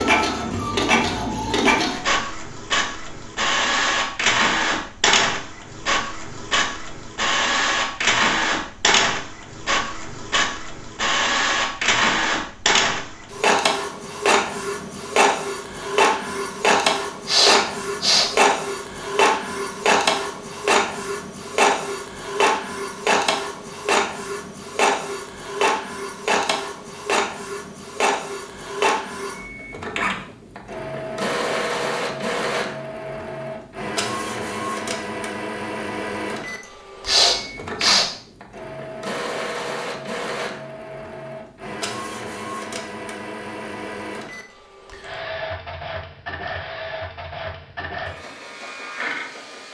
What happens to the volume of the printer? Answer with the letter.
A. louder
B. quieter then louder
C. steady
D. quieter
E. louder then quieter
D.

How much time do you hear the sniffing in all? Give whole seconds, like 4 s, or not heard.
2 s.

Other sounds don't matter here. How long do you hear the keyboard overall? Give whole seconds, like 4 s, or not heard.
not heard.